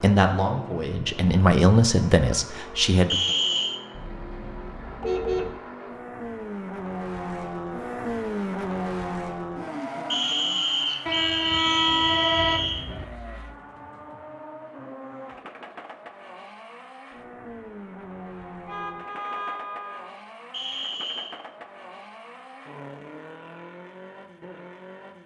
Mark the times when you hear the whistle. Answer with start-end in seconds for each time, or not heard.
3.1-3.8, 10.1-12.8, 20.5-21.4.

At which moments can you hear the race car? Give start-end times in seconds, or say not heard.
0.0-25.2.